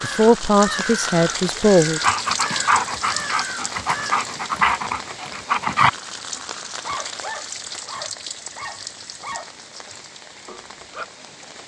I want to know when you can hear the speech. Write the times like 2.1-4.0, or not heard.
0.0-2.0.